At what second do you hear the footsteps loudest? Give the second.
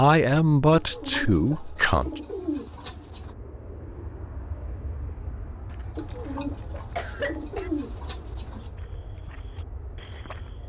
10 s.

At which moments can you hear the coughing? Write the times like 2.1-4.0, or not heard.
5.7-7.7.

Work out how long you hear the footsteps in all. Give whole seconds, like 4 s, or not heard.
2 s.